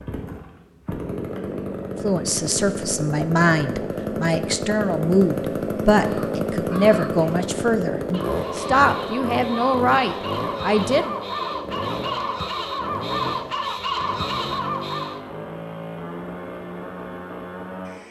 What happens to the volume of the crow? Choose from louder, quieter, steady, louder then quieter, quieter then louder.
louder.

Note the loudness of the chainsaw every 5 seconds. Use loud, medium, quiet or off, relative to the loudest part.
loud, loud, medium, medium.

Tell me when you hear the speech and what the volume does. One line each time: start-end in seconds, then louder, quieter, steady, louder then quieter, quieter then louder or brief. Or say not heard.
2.0-11.2 steady.